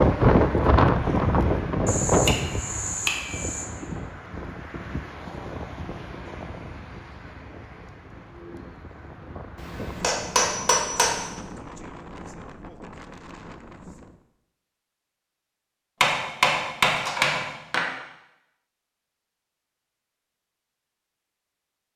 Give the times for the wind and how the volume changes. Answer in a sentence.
The wind can be heard from 0.0 to 14.2 s, getting quieter.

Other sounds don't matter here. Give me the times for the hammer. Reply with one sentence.
The hammer can be heard from 1.9 to 3.6 s, from 9.6 to 11.2 s and from 16.0 to 17.9 s.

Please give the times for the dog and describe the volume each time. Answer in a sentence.
You can't hear the dog here.